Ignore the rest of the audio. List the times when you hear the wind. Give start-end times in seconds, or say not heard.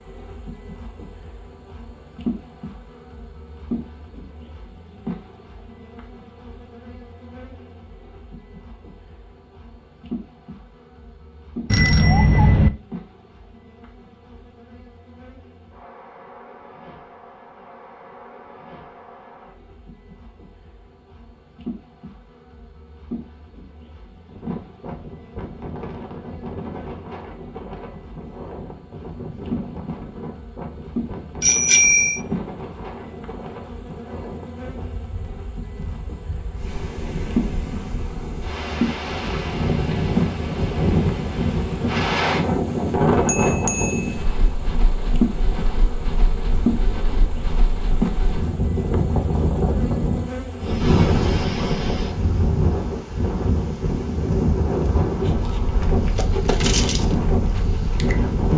24.2-58.5.